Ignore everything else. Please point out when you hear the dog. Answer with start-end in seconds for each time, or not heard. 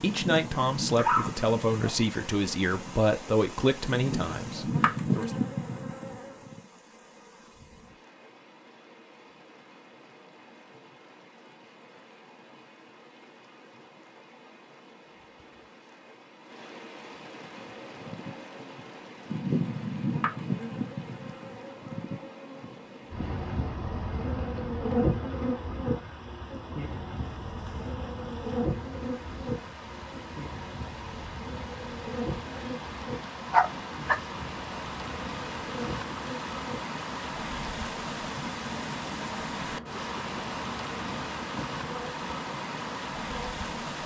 1.0-1.9, 33.5-34.1.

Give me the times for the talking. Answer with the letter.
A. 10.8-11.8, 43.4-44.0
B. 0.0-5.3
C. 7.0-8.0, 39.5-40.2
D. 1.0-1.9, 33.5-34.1
B.